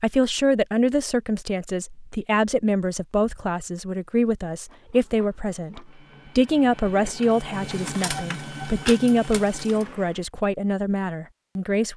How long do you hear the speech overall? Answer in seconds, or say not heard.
12 s.